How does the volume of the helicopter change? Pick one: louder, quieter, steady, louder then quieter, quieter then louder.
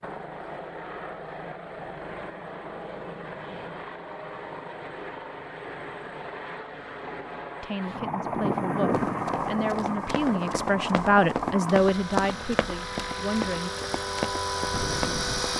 louder.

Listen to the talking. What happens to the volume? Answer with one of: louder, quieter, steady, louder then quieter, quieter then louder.
louder then quieter.